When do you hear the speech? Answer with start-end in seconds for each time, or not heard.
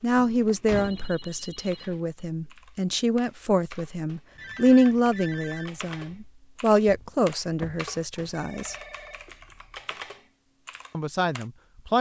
0.0-8.8, 10.9-11.9.